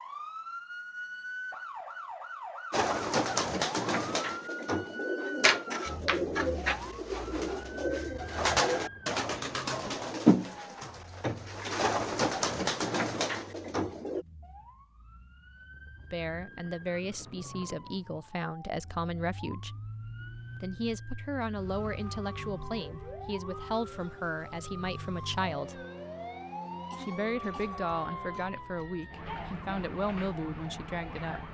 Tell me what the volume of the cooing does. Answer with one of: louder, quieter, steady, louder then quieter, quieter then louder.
steady.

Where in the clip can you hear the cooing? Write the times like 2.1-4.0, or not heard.
2.7-14.2.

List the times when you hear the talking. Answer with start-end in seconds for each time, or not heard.
16.1-19.8, 20.6-25.9, 26.9-31.4.